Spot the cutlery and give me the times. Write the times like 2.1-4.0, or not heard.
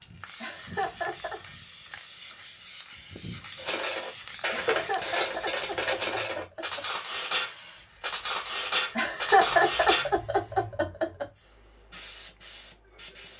3.5-10.1.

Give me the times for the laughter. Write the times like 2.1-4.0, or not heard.
0.4-1.4, 4.5-6.8, 8.9-11.2.